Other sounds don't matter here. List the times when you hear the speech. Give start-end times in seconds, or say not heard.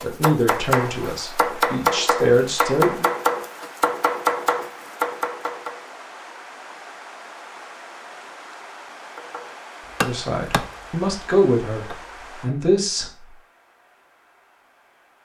0.0-3.1, 10.0-13.1.